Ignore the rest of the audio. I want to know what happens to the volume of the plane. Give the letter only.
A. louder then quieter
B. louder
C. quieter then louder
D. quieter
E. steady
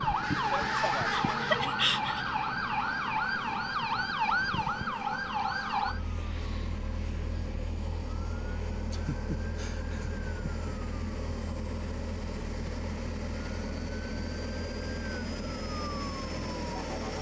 B.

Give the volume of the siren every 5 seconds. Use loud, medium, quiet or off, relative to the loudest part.
loud, medium, quiet, quiet.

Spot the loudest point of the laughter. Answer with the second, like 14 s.
2 s.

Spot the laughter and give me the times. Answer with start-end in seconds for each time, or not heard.
1.3-2.3, 8.9-10.7.